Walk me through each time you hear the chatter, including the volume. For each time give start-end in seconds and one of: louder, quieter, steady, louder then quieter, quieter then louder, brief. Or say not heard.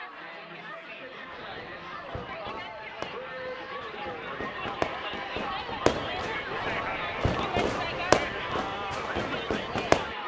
0.0-10.2 louder.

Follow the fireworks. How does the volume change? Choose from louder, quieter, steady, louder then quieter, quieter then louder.
louder then quieter.